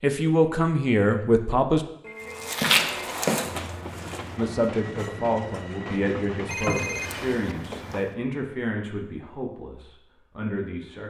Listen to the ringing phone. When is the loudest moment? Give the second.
7 s.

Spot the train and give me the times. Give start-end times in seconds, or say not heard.
2.1-6.5.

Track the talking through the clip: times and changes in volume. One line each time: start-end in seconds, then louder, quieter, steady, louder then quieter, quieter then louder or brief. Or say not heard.
0.0-1.9 brief
4.3-11.0 quieter.